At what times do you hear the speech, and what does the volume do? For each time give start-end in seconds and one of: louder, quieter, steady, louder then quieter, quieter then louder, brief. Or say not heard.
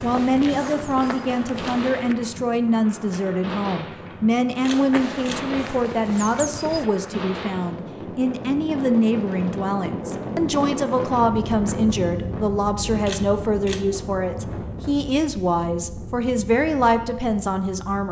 0.0-18.0 steady.